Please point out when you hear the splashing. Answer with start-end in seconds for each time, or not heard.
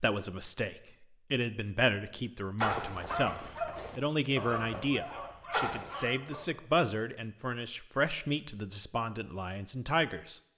2.5-3.0, 5.5-5.9.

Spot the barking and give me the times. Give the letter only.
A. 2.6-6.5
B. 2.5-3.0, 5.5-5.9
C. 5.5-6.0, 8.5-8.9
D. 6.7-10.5
A.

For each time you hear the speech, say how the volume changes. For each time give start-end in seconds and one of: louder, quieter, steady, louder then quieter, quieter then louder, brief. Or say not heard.
0.0-10.4 steady.